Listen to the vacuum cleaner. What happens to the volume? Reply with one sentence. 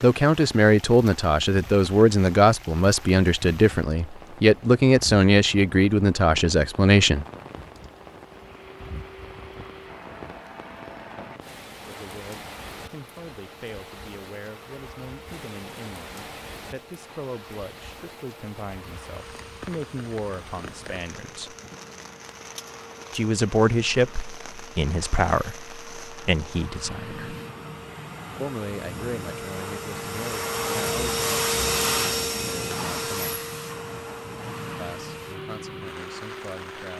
The volume of the vacuum cleaner goes up.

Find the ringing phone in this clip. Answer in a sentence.
You can't hear the ringing phone here.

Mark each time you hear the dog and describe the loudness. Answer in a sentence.
The dog can't be heard in this clip.